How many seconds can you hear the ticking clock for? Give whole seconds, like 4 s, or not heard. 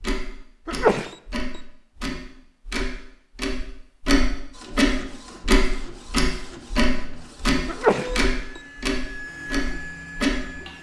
11 s.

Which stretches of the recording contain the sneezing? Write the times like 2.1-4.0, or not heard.
0.7-1.1, 7.7-8.2.